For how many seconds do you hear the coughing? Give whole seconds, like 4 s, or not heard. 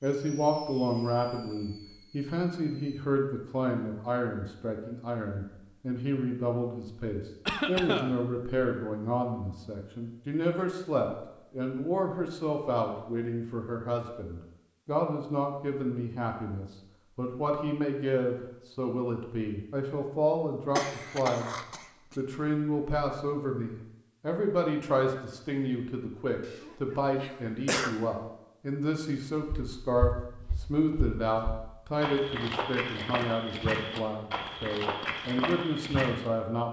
4 s.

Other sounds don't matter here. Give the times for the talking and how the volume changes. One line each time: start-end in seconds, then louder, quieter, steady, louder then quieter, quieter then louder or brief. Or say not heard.
0.0-21.6 steady
22.1-36.6 steady.